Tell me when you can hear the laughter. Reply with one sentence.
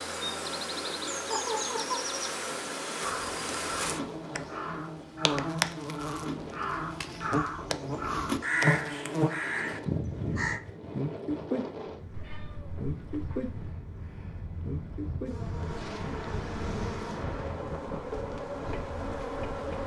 The laughter can be heard from 1.3 to 2.0 s.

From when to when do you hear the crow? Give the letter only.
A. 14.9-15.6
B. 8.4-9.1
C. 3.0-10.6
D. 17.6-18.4
C.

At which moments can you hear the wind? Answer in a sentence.
You can hear the wind from 0.0 to 19.8 s.